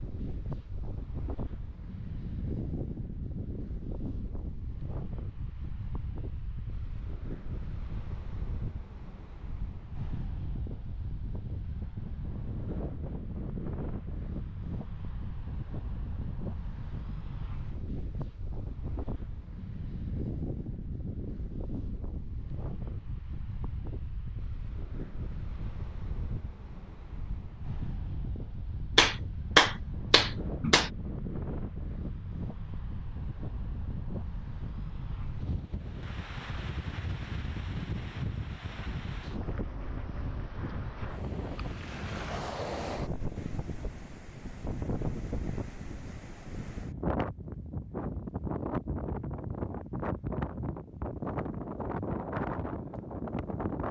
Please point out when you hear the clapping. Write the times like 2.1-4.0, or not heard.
28.9-30.9.